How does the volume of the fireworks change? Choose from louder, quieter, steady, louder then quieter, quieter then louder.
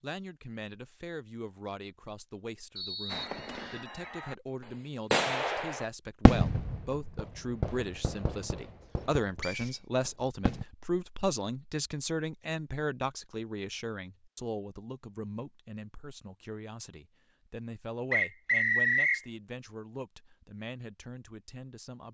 louder then quieter.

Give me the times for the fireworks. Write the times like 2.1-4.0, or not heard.
3.0-10.7.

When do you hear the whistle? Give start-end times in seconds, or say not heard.
2.8-3.9, 9.4-9.8, 18.1-19.2.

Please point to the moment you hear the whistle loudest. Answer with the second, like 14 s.
19 s.